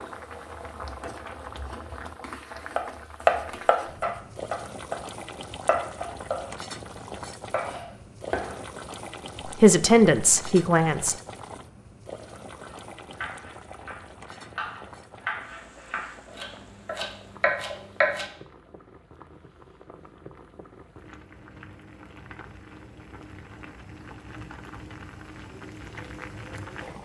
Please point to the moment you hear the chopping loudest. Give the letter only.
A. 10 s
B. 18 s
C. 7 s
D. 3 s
D.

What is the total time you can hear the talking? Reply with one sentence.
The talking can be heard for 2 seconds in total.